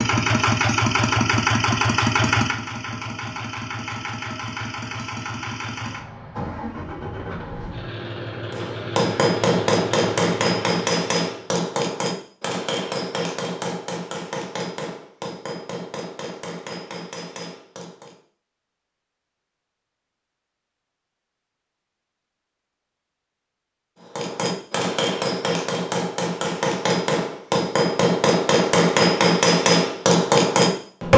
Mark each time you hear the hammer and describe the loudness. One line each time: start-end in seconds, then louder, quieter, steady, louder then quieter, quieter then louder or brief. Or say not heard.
8.5-18.1 quieter
24.1-31.1 louder.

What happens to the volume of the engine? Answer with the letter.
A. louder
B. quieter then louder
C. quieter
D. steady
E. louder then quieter
C.